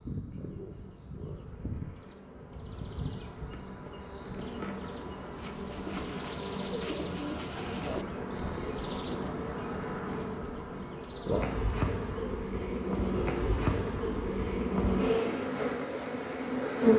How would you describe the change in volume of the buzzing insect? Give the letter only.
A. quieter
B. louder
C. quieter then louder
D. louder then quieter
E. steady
B.